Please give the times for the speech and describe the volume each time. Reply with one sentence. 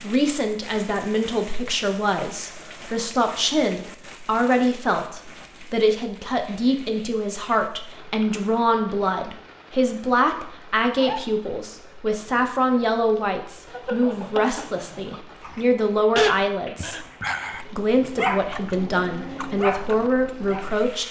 The speech can be heard from 0.0 to 21.0 s, at a steady volume.